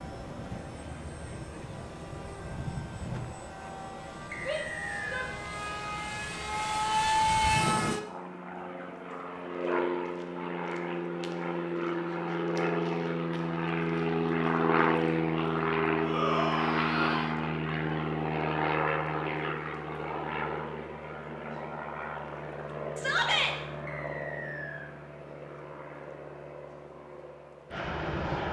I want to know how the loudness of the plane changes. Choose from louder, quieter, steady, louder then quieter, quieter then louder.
louder then quieter.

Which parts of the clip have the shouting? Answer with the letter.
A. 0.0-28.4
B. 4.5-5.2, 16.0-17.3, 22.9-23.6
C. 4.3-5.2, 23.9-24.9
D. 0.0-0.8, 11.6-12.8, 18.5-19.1
B.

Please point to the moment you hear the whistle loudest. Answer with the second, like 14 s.
5 s.